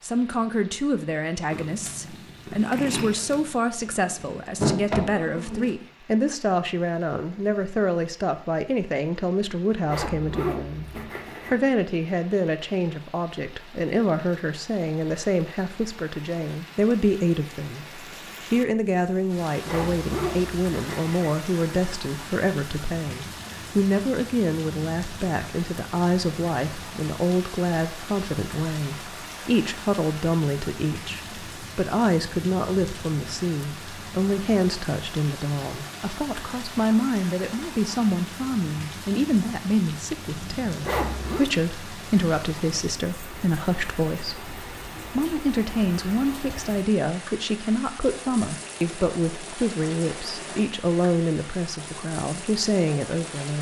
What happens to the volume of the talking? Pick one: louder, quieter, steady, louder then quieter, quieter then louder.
steady.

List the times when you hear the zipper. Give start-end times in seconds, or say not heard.
9.8-11.6, 19.6-21.4, 40.8-41.5.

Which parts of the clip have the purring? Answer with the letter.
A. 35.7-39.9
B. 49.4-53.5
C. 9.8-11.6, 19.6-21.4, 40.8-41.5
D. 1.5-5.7
D.